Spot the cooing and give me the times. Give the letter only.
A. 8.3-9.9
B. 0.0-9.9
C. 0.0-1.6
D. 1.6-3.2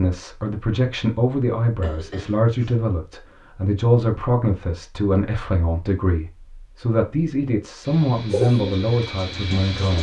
A.